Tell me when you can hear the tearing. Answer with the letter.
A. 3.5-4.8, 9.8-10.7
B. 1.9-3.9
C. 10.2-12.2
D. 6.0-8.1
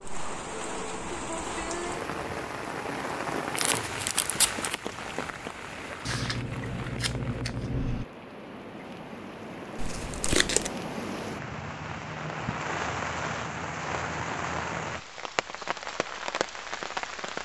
A.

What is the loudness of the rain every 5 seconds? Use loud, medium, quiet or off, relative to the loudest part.
loud, medium, loud, loud.